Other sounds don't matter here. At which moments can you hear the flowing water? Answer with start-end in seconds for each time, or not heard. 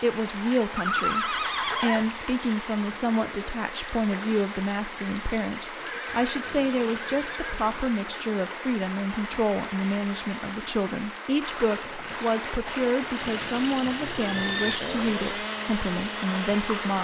0.0-16.9.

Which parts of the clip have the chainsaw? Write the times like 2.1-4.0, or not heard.
13.0-16.9.